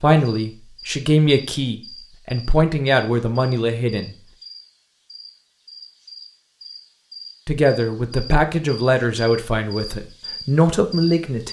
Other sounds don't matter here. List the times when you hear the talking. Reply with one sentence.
The talking can be heard from 0.0 to 4.2 s and from 7.5 to 11.4 s.